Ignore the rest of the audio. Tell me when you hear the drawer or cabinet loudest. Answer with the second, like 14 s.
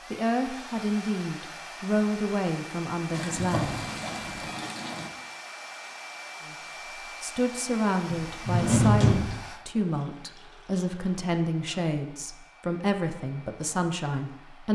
9 s.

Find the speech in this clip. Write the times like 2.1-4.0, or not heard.
0.1-3.9, 7.2-14.7.